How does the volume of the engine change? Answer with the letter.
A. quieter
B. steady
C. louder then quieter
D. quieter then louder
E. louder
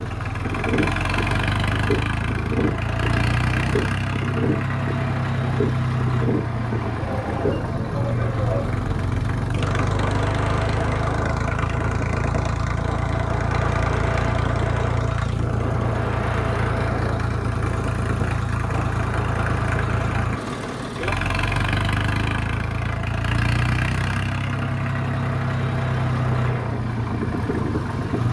B.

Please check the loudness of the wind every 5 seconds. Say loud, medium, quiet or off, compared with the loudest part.
loud, loud, loud, loud, medium, loud.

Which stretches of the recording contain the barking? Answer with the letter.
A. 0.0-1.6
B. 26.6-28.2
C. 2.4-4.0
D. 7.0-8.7
D.